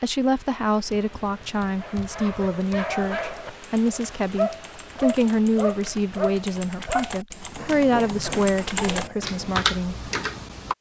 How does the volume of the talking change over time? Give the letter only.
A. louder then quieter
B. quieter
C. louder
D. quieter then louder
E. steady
E.